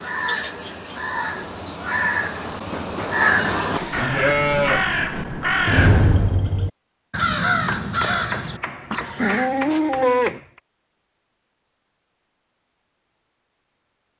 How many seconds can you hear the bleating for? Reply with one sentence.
You can hear the bleating for 3 seconds altogether.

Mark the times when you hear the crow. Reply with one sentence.
The crow can be heard from 0.0 to 9.6 s.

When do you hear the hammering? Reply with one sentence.
The hammering can be heard from 2.5 to 4.2 s and from 7.7 to 10.6 s.